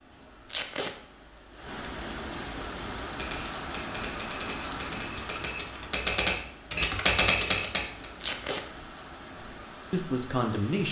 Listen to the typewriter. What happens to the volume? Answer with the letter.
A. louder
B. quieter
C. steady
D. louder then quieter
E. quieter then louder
A.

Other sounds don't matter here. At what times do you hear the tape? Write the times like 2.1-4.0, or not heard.
0.5-0.9, 8.2-8.7.